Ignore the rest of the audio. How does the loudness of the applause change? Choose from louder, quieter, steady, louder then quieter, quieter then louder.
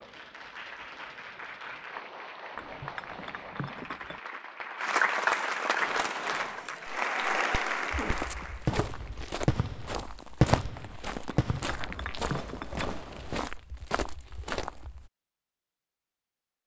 louder.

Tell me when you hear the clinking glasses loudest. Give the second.
12 s.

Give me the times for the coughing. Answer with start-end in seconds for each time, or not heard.
8.0-8.9.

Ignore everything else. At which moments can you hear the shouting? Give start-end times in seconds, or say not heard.
not heard.